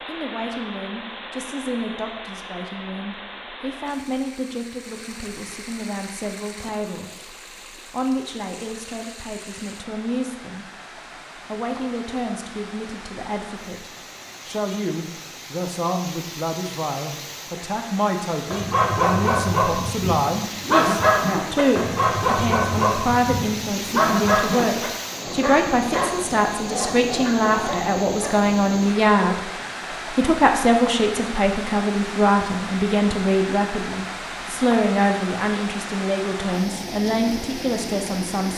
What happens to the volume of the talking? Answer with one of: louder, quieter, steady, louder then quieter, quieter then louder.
louder.